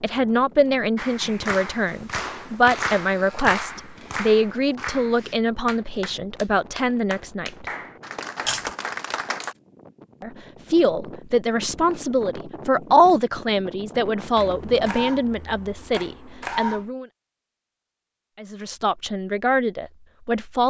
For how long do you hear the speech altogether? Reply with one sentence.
You can hear the speech for 17 seconds altogether.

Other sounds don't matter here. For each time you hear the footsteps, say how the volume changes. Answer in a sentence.
The footsteps can't be heard in this clip.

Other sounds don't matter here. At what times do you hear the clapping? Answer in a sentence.
The clapping can be heard from 0.9 to 9.6 s.